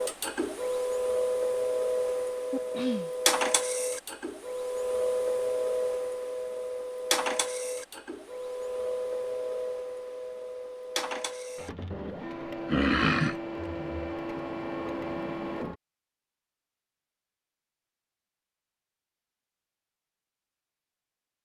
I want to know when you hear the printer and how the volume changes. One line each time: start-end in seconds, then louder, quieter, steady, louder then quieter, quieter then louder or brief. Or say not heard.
0.0-15.8 quieter.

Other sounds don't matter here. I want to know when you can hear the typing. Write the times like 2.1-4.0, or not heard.
not heard.